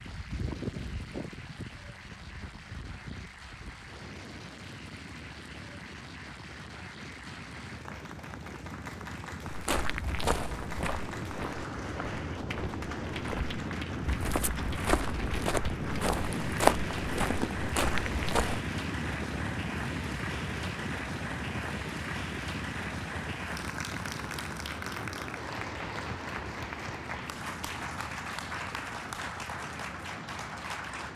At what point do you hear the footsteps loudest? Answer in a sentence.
The volume of the footsteps peaks at 17 seconds.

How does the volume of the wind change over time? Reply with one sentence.
The loudness of the wind goes up, then down.